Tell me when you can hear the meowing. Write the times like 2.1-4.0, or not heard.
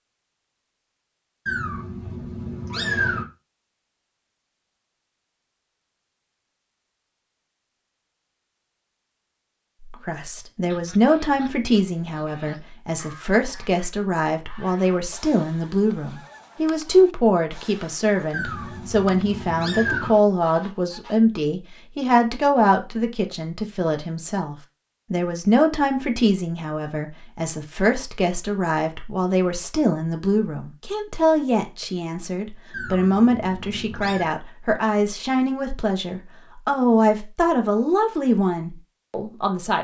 1.4-3.2, 18.3-20.1, 32.7-34.4.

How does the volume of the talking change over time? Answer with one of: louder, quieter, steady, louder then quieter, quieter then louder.
steady.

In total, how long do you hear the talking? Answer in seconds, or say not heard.
30 s.